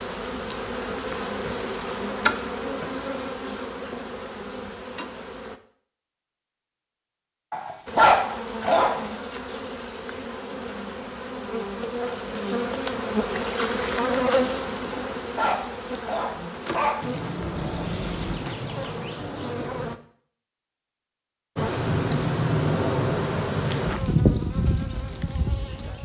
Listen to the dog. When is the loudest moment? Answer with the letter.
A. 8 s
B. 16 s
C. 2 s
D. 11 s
A.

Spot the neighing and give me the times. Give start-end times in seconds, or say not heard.
17.4-18.4.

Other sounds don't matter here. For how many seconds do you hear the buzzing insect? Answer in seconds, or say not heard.
22 s.